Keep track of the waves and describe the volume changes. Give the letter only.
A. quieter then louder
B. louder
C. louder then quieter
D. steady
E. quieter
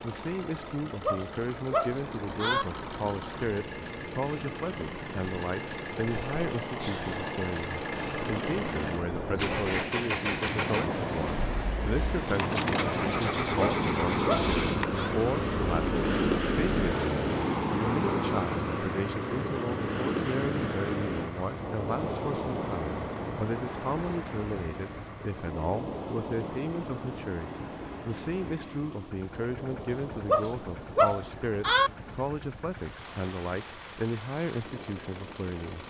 C.